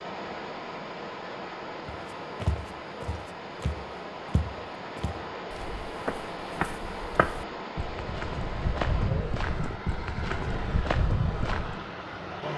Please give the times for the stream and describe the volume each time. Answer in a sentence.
You can hear the stream from 0.0 to 12.5 s, at a steady volume.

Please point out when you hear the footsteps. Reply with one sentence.
You can hear the footsteps from 1.9 to 11.8 s.